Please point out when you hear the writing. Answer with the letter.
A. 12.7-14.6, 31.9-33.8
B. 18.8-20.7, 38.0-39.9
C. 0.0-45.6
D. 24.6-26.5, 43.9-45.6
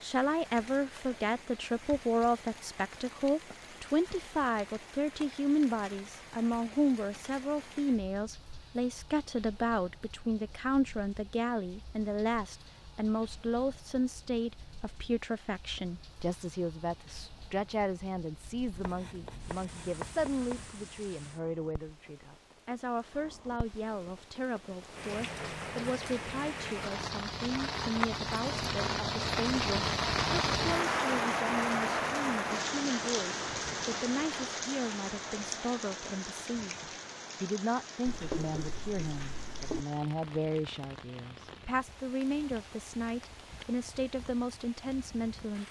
B.